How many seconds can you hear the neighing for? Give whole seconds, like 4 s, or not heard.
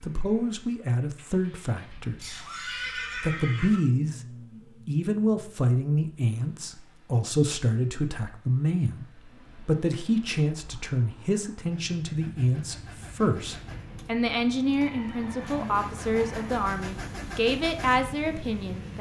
3 s.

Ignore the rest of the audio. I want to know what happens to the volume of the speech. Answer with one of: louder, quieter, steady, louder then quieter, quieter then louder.
steady.